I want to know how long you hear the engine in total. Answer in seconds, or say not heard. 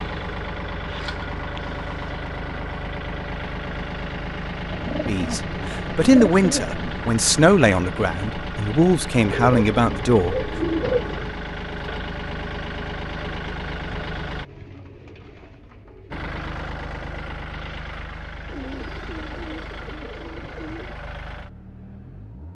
21 s.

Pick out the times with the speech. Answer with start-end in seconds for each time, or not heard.
5.0-10.5.